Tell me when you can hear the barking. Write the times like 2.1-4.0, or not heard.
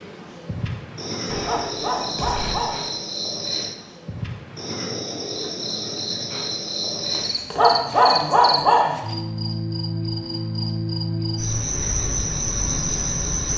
1.2-2.9, 7.1-9.0.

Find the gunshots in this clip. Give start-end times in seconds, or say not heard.
1.2-2.5.